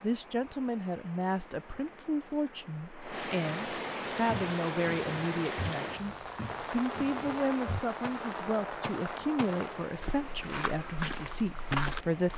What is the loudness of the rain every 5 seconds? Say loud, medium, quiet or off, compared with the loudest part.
loud, loud, medium.